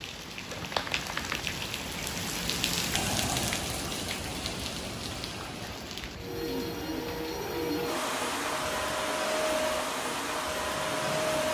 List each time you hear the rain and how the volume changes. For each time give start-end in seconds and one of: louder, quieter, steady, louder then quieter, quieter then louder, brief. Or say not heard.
0.0-11.4 quieter.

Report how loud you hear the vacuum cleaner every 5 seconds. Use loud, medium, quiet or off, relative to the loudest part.
off, loud, loud.